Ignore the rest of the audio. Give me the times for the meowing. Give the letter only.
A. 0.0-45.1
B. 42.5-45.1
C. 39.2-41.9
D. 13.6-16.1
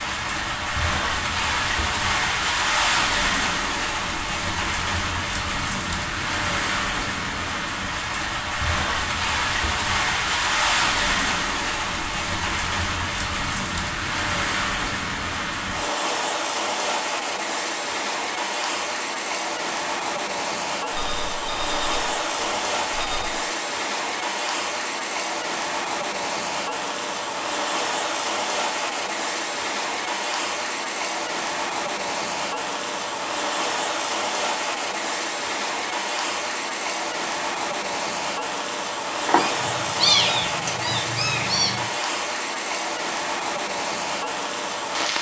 C.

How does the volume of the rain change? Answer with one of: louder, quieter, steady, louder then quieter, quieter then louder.
steady.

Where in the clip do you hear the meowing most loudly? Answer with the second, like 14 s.
40 s.